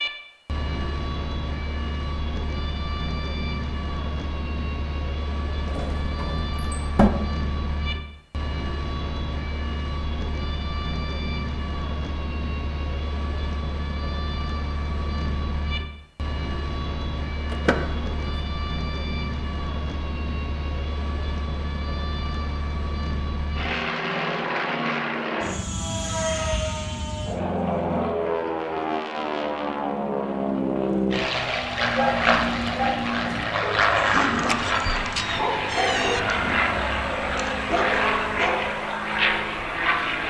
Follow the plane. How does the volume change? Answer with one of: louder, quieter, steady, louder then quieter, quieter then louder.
louder.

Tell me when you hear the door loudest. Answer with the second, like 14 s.
7 s.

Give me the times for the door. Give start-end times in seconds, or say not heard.
5.7-7.1, 17.5-18.2, 34.4-36.2.